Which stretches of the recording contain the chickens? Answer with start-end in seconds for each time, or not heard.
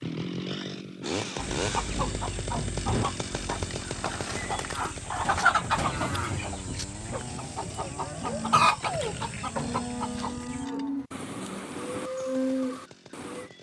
1.4-10.7.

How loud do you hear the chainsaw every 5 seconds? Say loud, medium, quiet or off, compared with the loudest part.
loud, medium, quiet.